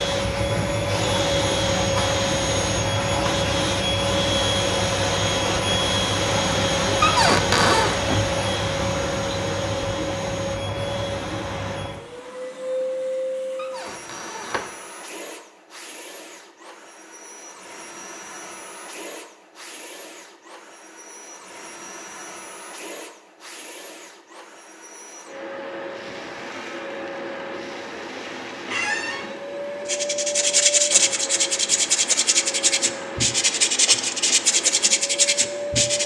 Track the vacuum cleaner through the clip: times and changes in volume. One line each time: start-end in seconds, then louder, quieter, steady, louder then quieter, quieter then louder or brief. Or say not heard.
0.0-36.0 quieter then louder.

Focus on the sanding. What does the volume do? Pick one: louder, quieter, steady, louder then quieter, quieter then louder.
steady.